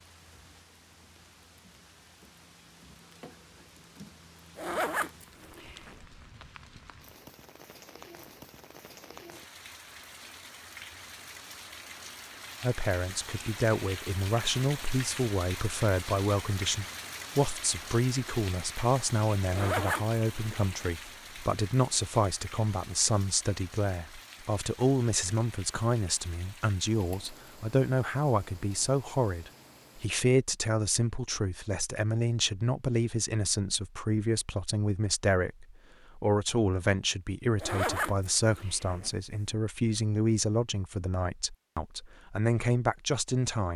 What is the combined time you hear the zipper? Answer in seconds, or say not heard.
4 s.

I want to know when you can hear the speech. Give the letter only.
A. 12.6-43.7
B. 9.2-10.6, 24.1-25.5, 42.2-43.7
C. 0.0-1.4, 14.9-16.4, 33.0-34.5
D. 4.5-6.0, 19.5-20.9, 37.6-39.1
A.